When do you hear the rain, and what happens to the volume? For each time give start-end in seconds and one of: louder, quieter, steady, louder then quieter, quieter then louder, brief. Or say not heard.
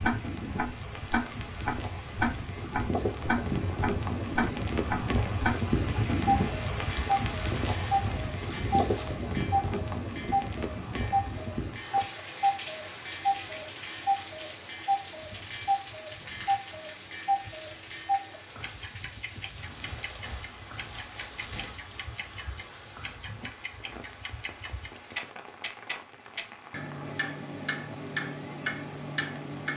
0.0-29.7 quieter.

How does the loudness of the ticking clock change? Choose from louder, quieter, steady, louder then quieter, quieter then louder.
quieter then louder.